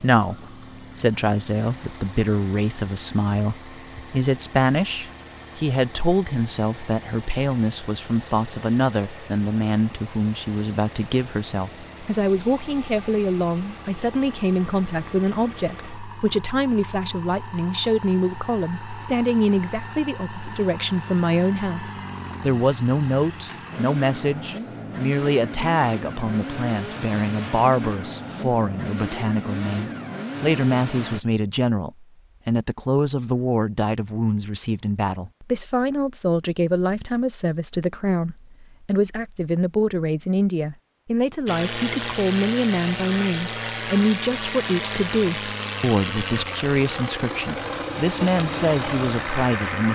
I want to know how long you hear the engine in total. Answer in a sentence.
The engine can be heard for 40 seconds in total.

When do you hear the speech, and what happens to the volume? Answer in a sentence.
You can hear the speech from 0.0 to 49.9 s, at a steady volume.